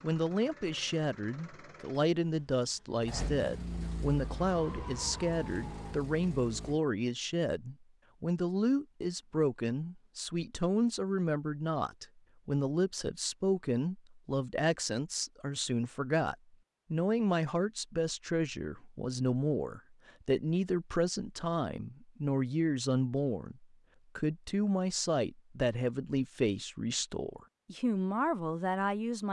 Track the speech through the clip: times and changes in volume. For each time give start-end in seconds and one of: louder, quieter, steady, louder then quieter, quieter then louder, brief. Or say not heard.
0.0-29.2 steady.